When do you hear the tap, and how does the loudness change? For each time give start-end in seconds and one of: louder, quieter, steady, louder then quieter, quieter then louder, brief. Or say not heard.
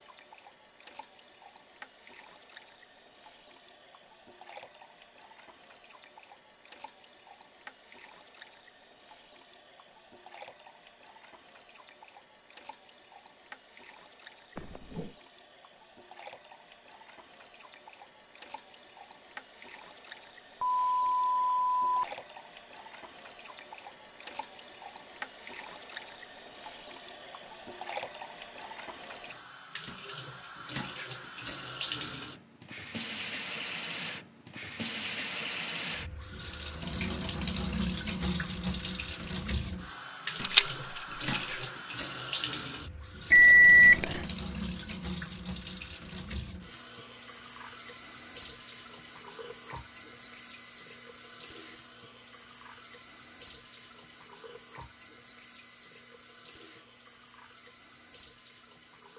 0.0-59.1 louder then quieter.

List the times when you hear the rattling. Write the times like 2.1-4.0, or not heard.
40.4-41.6.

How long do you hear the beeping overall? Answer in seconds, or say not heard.
3 s.